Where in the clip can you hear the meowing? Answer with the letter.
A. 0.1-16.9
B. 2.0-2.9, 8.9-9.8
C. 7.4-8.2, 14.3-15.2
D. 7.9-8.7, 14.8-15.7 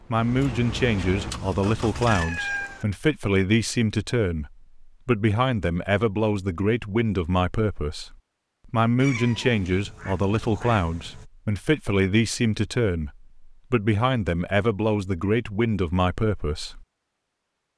B.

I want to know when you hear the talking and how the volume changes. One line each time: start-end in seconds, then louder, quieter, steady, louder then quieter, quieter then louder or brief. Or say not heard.
0.1-16.9 steady.